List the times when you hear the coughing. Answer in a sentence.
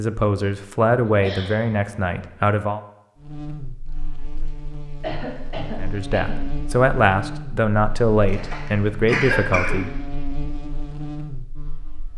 You can hear the coughing from 1.1 to 2.2 s, from 5.0 to 6.4 s and from 8.2 to 9.8 s.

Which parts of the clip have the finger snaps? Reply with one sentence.
The finger snaps can't be heard in this clip.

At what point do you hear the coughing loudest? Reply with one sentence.
The loudest moment of the coughing is at 9 seconds.